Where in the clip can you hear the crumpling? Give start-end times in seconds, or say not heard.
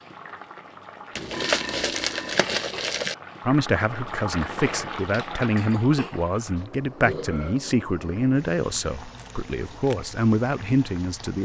1.1-3.1, 9.2-9.9.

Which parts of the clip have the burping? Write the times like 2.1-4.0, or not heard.
1.1-2.5, 6.5-7.6.